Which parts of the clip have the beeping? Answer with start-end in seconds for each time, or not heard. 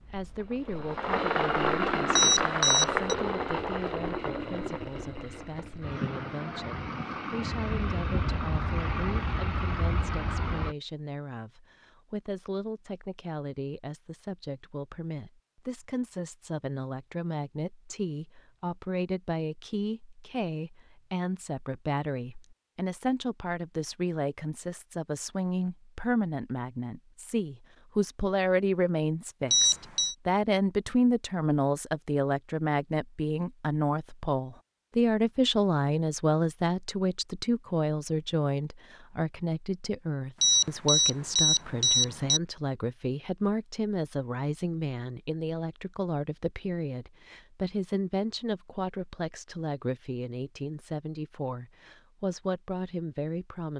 2.1-3.1, 29.5-30.1, 40.4-42.4.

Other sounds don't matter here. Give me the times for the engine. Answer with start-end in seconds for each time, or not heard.
0.0-10.8.